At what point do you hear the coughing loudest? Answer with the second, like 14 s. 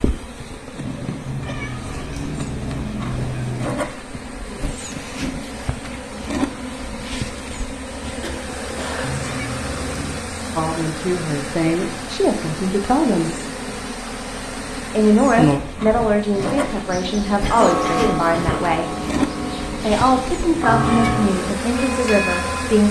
18 s.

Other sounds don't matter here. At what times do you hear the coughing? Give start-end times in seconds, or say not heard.
8.2-9.1, 17.4-18.6.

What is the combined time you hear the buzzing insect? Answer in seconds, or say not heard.
23 s.